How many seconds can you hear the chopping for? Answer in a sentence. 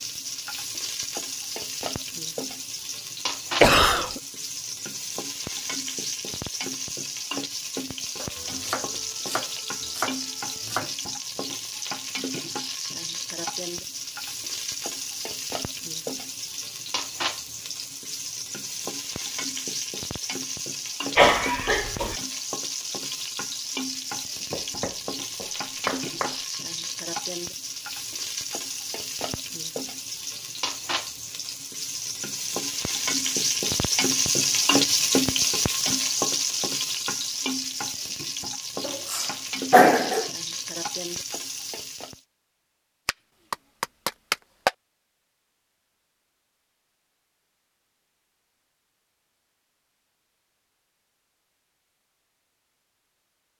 You can hear the chopping for 6 seconds altogether.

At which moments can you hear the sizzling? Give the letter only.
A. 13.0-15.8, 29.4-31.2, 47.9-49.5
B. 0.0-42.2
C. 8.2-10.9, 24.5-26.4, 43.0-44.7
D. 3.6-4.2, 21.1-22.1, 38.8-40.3
B.